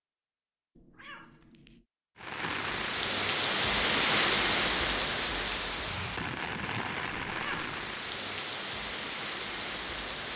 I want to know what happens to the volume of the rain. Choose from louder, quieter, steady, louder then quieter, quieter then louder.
quieter.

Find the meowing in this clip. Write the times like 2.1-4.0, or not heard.
0.8-1.9, 7.2-7.8.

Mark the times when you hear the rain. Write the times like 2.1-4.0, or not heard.
2.1-10.3.